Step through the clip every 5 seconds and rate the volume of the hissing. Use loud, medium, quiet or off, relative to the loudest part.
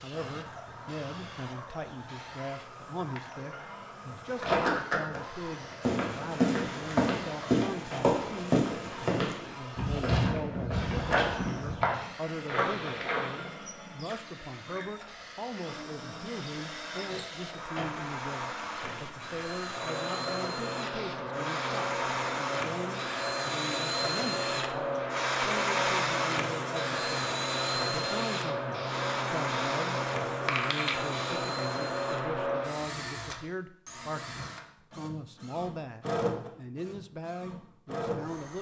quiet, quiet, quiet, medium, loud, loud, loud, off.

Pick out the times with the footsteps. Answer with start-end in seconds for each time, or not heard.
4.4-5.2, 5.8-13.5.